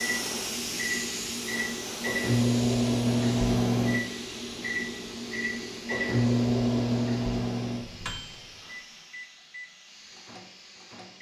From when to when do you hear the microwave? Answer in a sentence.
The microwave can be heard from 0.0 to 11.1 s.